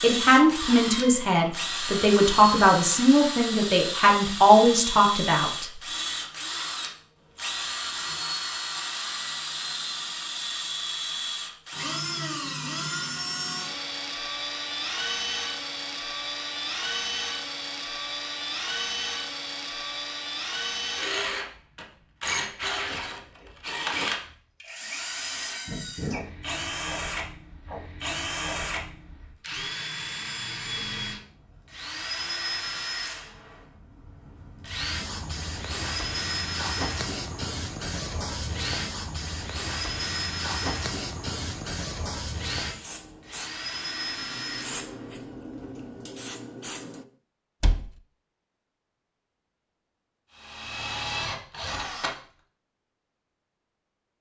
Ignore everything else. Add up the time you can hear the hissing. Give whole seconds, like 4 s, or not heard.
12 s.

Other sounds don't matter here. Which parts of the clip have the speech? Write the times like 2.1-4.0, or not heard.
0.0-5.7.